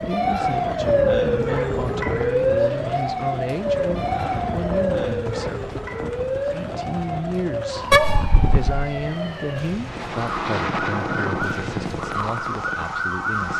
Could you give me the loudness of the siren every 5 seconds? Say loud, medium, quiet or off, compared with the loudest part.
loud, medium, medium.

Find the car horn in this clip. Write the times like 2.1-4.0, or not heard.
7.9-8.8.